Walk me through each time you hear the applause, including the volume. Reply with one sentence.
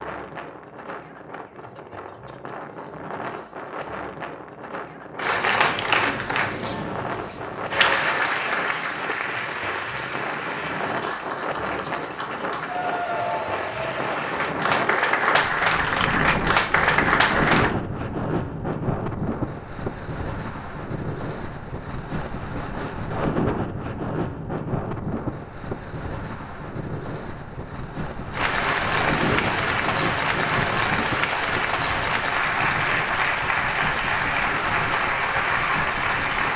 The applause can be heard from 5.2 to 17.8 s, getting quieter then louder; and from 28.3 to 36.5 s, at a steady volume.